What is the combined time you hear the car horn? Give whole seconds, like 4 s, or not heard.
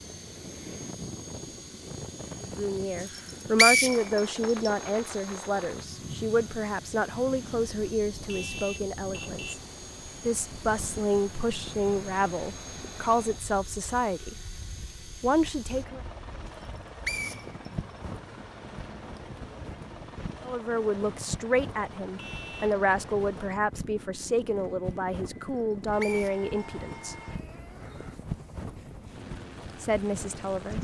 2 s.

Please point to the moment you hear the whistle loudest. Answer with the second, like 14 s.
4 s.